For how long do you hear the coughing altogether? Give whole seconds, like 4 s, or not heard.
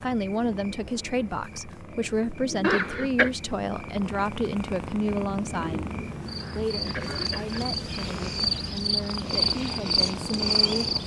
2 s.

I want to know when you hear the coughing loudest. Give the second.
3 s.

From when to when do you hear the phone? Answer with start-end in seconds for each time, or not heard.
not heard.